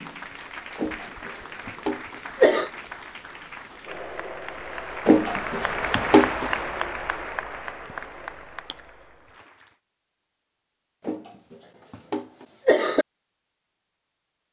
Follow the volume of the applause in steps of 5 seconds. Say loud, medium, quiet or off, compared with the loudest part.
medium, loud, off.